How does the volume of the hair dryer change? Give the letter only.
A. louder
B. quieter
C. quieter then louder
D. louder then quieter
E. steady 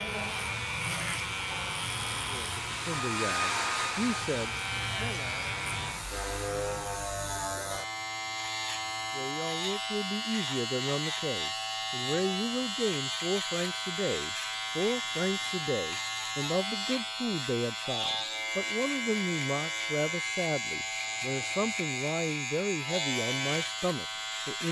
D.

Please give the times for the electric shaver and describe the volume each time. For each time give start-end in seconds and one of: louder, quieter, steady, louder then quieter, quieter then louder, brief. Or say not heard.
0.0-24.6 steady.